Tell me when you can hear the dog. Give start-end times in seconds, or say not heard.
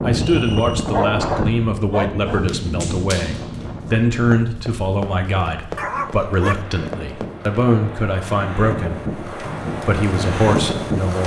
0.9-2.5, 5.8-6.6.